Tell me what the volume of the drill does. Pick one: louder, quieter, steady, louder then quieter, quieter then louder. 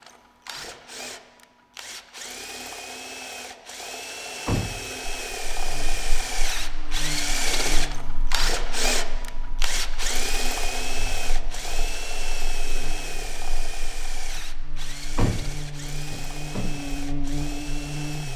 louder then quieter.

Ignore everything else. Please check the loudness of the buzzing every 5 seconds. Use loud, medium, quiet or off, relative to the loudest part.
off, medium, quiet, loud.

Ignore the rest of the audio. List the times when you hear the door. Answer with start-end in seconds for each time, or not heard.
4.5-5.0, 15.2-16.8.